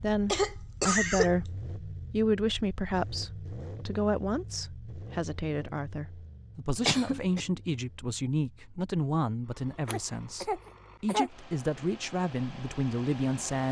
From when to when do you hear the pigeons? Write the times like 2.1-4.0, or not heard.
not heard.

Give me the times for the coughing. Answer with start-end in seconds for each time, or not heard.
0.2-1.4, 6.8-7.5, 9.8-11.3.